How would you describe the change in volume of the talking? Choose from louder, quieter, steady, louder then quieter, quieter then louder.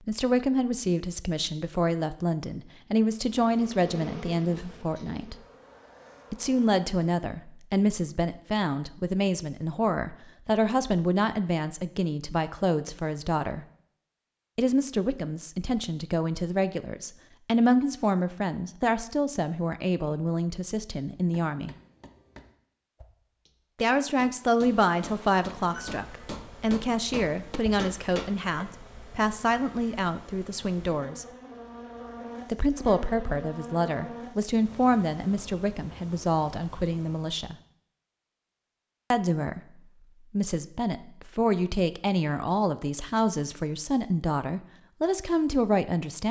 steady.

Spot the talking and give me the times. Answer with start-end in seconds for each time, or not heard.
0.1-5.3, 6.3-13.7, 14.6-21.8, 23.8-31.2, 32.5-37.5, 39.1-46.2.